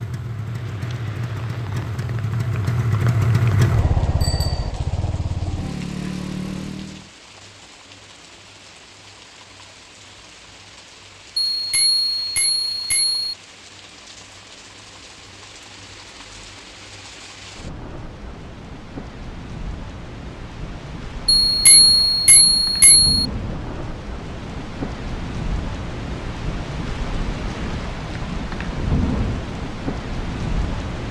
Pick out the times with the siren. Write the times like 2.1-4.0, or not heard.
not heard.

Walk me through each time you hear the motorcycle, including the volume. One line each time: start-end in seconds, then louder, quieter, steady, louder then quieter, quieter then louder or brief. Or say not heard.
0.0-7.1 louder then quieter.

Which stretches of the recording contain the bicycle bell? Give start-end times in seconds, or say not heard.
4.2-4.7, 11.5-13.3, 21.4-23.1.